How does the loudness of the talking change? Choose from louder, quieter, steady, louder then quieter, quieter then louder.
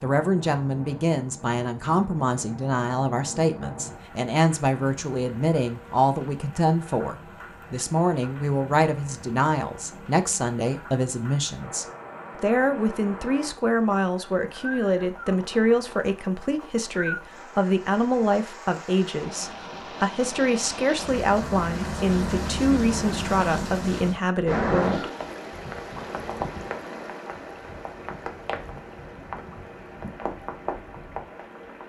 steady.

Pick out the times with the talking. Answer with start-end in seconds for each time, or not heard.
0.0-25.1.